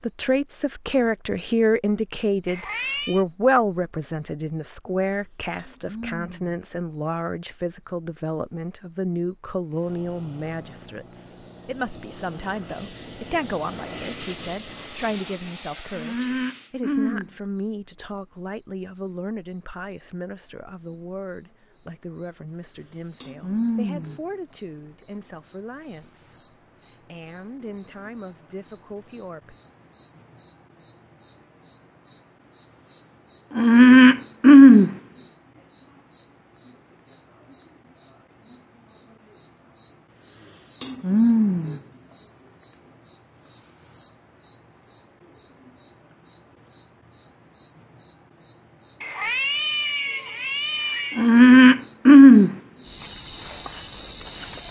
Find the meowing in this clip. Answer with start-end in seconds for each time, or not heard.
2.5-3.2, 49.0-51.3.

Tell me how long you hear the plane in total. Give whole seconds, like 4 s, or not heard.
7 s.